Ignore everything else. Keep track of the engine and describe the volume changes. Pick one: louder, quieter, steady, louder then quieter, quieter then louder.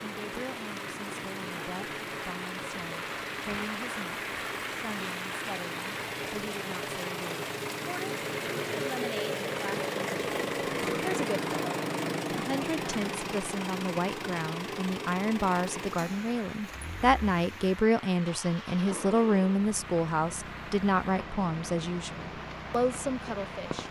louder then quieter.